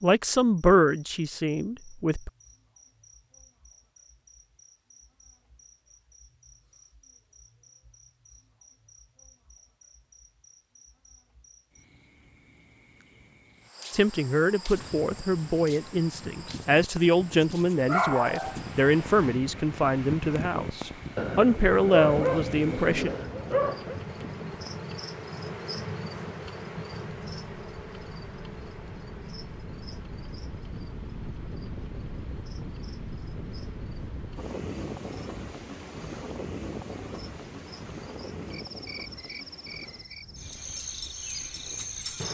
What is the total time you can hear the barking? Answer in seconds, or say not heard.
4 s.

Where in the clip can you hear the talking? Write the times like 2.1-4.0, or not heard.
0.0-2.3, 13.9-23.1.